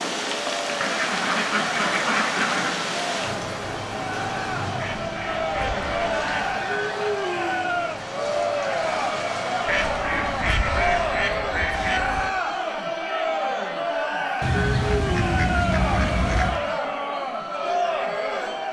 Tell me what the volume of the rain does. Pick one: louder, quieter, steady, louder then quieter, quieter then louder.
quieter.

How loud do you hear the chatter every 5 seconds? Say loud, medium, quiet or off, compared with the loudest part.
medium, loud, loud, loud.